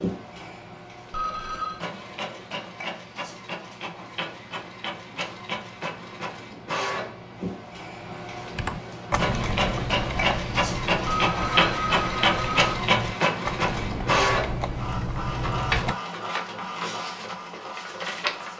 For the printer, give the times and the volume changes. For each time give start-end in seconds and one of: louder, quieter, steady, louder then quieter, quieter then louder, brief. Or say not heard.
0.0-18.5 louder then quieter.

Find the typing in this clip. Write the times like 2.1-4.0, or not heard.
8.5-15.9.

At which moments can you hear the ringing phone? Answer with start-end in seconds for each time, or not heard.
1.1-1.8, 11.1-12.8.